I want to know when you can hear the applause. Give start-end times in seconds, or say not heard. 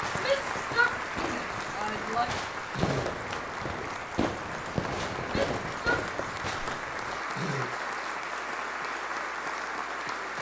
0.0-10.3.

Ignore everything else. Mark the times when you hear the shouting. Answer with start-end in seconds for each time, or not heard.
0.1-2.3, 5.2-6.1.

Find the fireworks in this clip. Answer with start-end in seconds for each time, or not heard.
0.0-7.2.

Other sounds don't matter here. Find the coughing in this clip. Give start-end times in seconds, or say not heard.
2.7-3.2, 7.3-7.8.